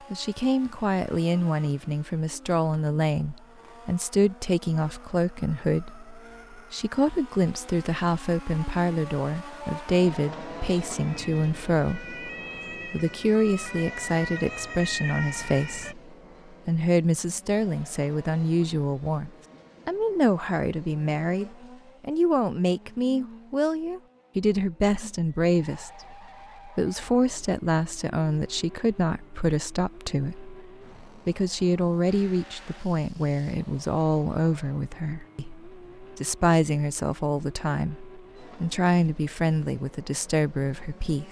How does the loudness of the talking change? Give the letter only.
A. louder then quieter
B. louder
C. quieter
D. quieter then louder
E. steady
E.